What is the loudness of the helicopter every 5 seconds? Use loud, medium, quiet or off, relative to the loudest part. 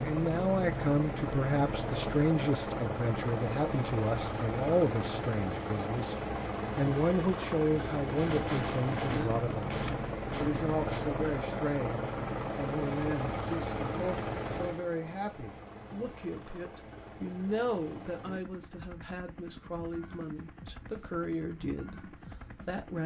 loud, loud, loud, quiet, quiet.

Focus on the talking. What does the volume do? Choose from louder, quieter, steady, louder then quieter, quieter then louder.
quieter.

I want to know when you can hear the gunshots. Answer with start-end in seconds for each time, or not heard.
8.1-11.0.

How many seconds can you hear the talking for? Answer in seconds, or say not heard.
23 s.